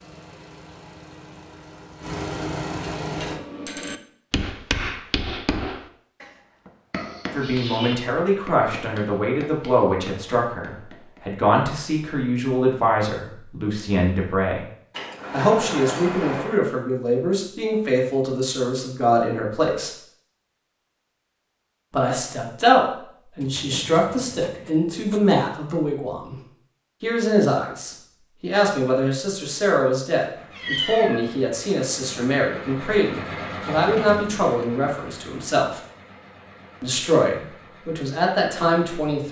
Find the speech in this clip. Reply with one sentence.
The speech can be heard from 7.3 to 14.7 s, from 15.3 to 19.9 s, from 21.9 to 26.4 s, from 27.0 to 35.8 s and from 36.8 to 39.2 s.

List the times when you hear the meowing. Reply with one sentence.
You can hear the meowing from 6.9 to 8.0 s, from 14.9 to 16.6 s and from 30.5 to 31.3 s.